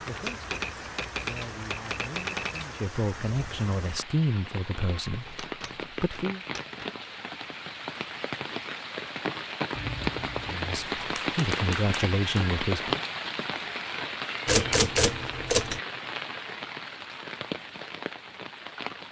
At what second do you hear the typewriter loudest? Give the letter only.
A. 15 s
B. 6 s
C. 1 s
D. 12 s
A.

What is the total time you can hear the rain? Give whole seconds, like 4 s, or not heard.
19 s.